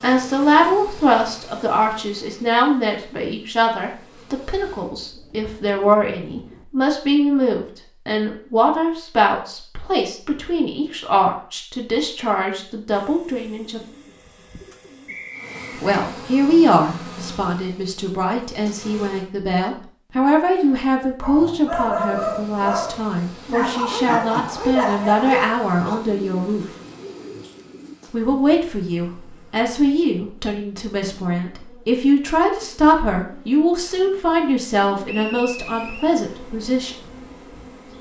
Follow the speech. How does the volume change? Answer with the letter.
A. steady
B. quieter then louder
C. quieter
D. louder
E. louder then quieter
A.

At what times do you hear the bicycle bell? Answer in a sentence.
You can't hear the bicycle bell here.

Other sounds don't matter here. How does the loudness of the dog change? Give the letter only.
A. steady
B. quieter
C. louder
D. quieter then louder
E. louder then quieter
C.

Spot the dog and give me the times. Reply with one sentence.
The dog can be heard from 20.4 to 25.9 s.